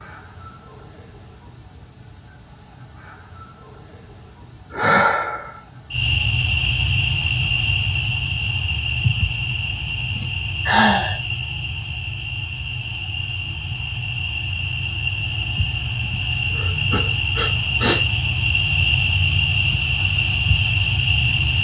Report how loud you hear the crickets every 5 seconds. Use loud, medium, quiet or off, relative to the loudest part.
quiet, loud, medium, loud, loud.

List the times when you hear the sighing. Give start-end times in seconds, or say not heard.
4.7-5.5, 10.2-11.2, 16.1-18.0.